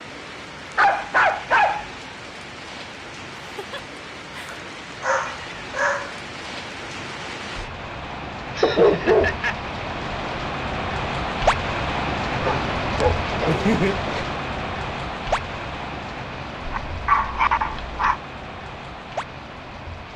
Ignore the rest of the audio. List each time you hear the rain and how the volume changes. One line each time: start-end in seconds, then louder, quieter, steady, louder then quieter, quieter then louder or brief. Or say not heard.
0.0-20.1 louder then quieter.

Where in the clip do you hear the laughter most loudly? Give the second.
14 s.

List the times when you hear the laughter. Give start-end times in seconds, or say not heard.
3.5-4.6, 8.5-9.6, 13.4-14.1.